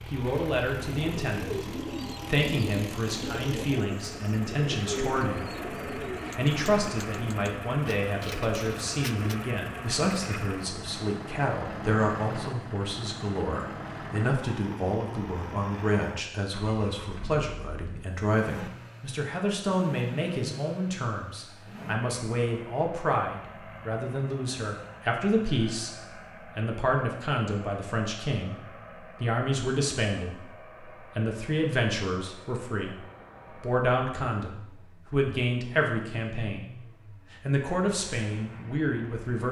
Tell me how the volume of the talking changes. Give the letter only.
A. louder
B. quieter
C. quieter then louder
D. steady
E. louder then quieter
D.